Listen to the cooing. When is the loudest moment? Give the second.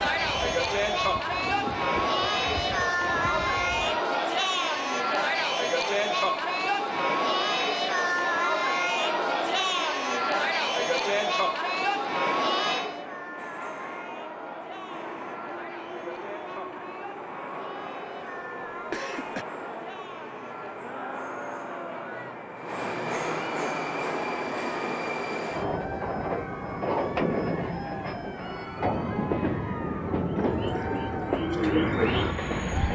32 s.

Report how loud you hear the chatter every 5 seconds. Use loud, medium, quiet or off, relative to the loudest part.
loud, loud, loud, quiet, quiet, quiet, quiet.